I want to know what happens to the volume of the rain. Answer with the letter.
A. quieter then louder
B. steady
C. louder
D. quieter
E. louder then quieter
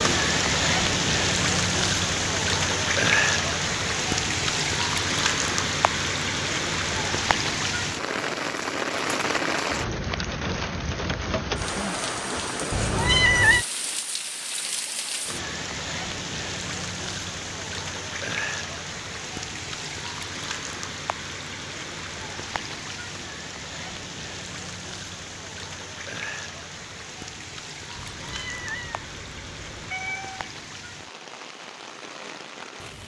D.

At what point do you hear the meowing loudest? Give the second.
13 s.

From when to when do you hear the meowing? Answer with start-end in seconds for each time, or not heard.
12.7-13.7, 27.9-30.5.